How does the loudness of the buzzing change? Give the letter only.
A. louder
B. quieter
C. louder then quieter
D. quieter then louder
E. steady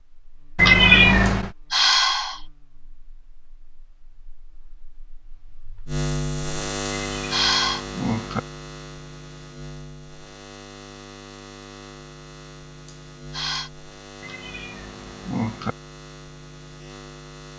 C.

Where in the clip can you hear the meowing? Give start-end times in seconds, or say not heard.
0.6-1.5, 7.0-8.4, 14.2-15.8.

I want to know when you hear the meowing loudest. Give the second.
1 s.